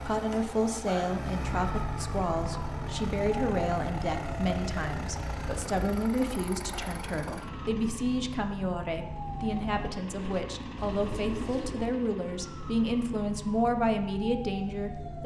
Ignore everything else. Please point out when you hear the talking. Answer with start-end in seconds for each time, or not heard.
0.0-15.2.